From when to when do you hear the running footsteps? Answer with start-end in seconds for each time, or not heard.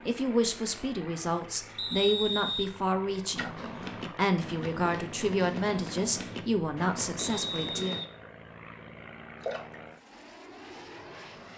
3.5-8.1.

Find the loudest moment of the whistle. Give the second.
2 s.